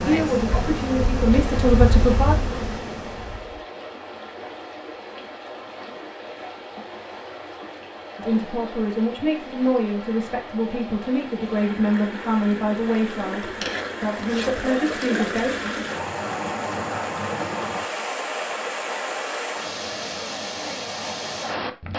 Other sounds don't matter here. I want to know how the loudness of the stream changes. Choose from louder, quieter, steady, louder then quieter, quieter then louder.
louder.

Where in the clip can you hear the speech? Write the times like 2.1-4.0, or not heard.
0.0-2.4, 8.2-15.6.